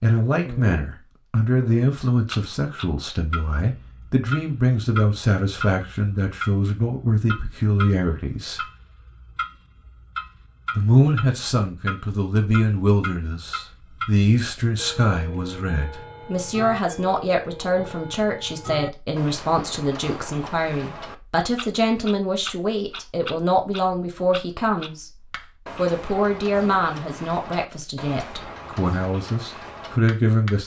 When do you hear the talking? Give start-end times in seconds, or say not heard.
0.0-8.7, 10.8-25.1, 25.8-30.6.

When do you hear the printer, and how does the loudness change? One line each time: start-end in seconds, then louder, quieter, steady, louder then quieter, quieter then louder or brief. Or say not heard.
not heard.